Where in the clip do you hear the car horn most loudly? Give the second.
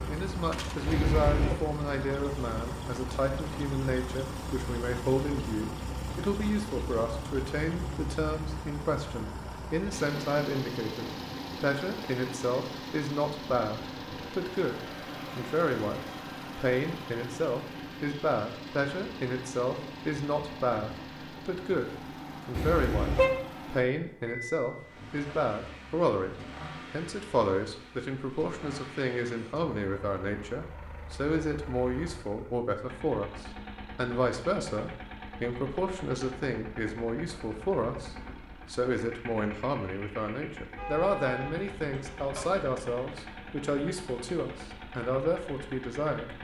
23 s.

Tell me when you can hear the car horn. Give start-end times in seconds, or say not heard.
0.8-1.6, 22.6-23.4, 40.8-42.6.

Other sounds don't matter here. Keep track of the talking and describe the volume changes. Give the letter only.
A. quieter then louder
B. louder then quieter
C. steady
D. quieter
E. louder
C.